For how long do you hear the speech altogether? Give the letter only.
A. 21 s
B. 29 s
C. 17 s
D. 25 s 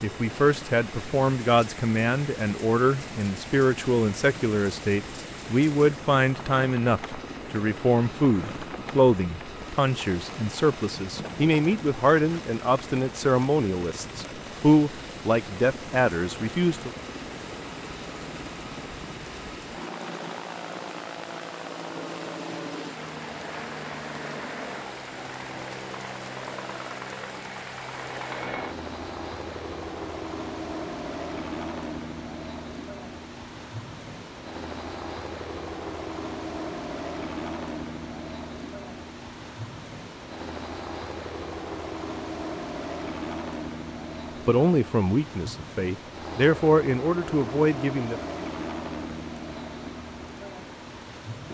A.